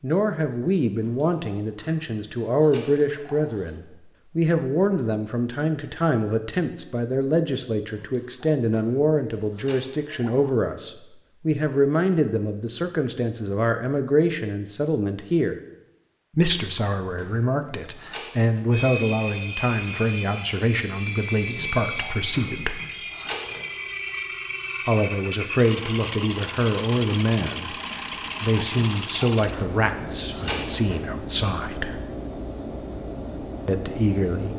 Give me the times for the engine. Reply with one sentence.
You can hear the engine from 18.7 to 34.5 s.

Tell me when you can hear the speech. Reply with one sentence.
You can hear the speech from 0.0 to 15.6 s, from 16.4 to 22.8 s, from 24.9 to 32.0 s and from 33.6 to 34.5 s.